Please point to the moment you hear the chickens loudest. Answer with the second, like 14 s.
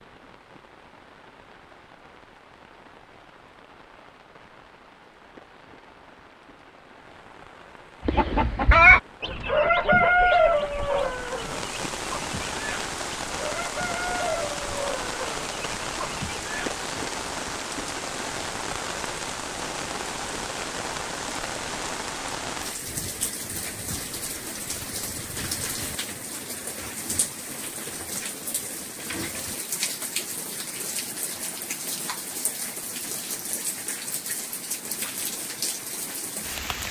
9 s.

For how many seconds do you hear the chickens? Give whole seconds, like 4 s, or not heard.
9 s.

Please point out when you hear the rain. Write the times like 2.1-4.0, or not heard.
0.0-36.8.